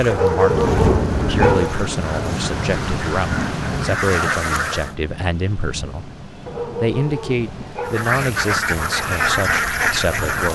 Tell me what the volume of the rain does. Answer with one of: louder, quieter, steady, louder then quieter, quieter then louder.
quieter.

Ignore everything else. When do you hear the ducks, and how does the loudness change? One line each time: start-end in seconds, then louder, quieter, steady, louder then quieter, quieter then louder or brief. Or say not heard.
0.0-5.0 louder
7.8-10.5 brief.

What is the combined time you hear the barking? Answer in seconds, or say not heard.
3 s.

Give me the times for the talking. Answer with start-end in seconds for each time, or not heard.
0.0-10.5.